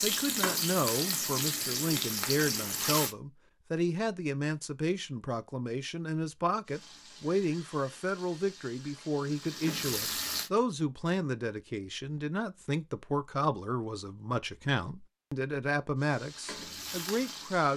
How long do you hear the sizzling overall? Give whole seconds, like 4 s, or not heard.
9 s.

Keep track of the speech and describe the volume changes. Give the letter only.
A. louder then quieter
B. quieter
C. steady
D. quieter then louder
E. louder
C.